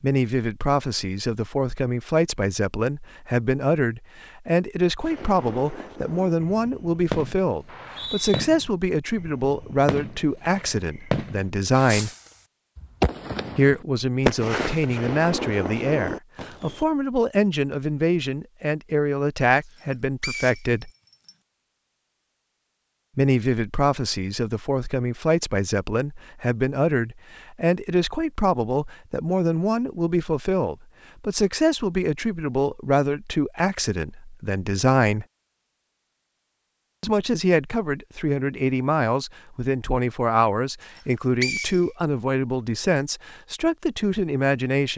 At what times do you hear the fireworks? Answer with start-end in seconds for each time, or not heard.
5.0-16.9.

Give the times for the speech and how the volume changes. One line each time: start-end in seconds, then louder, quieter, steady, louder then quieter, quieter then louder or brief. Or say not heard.
0.0-12.1 steady
13.6-20.9 steady
23.1-35.2 steady
37.0-44.9 steady.